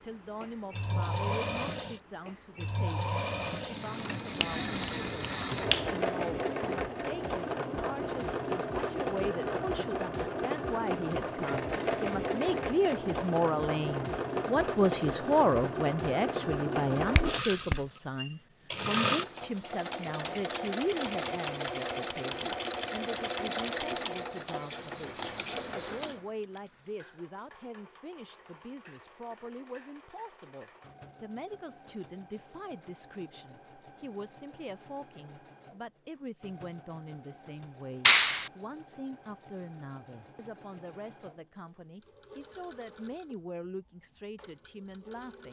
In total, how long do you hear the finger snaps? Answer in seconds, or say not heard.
3 s.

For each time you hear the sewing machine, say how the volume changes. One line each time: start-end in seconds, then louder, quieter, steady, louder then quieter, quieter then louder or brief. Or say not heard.
0.1-45.4 quieter.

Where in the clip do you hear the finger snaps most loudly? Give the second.
38 s.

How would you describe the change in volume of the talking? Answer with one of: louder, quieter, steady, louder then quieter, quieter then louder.
louder then quieter.